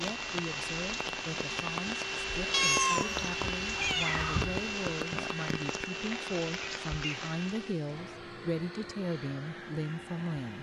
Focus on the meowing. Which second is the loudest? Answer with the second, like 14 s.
3 s.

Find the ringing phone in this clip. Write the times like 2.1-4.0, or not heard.
not heard.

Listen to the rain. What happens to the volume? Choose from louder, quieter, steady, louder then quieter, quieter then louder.
steady.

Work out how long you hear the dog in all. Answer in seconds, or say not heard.
not heard.